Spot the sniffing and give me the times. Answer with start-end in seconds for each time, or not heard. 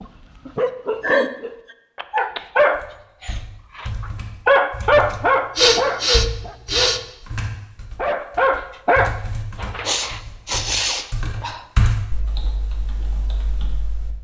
1.0-1.8, 5.5-7.0, 9.8-11.7.